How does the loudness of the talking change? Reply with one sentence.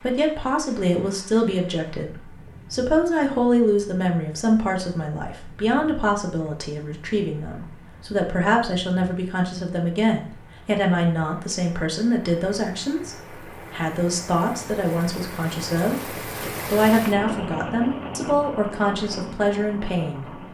The loudness of the talking stays about the same.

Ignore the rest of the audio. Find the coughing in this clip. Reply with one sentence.
You can't hear the coughing here.